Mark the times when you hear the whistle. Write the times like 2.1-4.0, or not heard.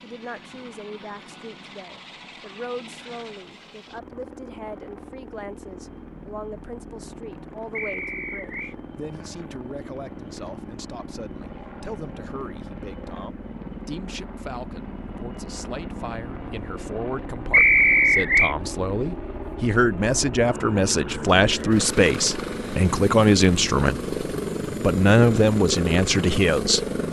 7.8-8.8, 17.5-18.6.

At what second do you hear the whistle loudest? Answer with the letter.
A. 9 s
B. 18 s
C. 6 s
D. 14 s
B.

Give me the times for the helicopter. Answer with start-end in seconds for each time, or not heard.
0.0-27.0.